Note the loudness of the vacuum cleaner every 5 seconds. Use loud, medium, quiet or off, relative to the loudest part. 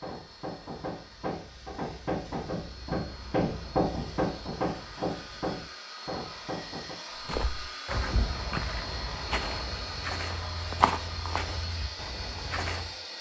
medium, loud, loud.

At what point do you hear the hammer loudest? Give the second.
4 s.